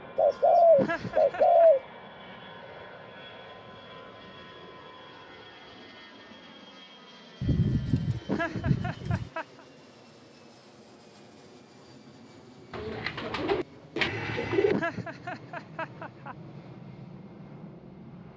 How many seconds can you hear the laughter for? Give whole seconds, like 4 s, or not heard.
4 s.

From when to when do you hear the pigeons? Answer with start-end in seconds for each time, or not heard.
0.1-1.8, 7.4-9.3, 12.7-14.8.